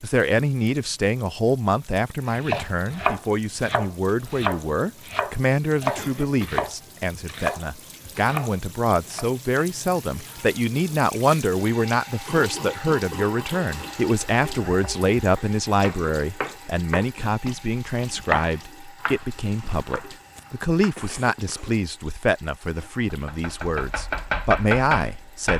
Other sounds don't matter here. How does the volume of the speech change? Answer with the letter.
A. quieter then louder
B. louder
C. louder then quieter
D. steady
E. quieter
D.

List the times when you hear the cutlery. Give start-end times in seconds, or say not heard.
not heard.